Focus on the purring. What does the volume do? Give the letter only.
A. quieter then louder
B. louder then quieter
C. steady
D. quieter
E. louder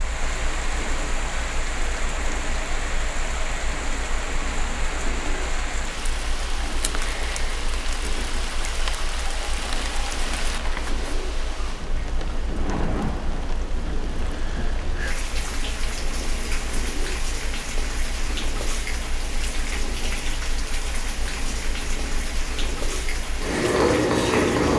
E.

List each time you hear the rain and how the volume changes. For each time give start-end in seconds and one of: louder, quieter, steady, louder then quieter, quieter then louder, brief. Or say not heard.
0.0-24.7 steady.